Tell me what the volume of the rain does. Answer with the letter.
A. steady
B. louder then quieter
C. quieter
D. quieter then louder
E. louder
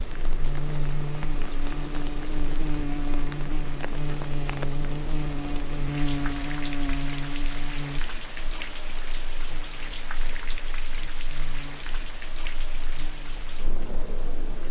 A.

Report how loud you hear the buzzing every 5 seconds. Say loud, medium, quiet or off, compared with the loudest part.
loud, loud, quiet.